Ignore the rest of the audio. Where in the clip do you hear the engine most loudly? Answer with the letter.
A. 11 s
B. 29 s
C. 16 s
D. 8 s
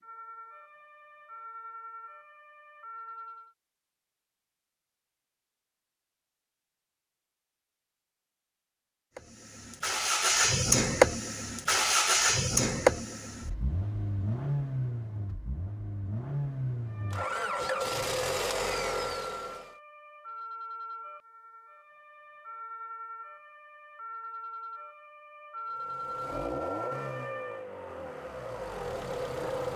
A.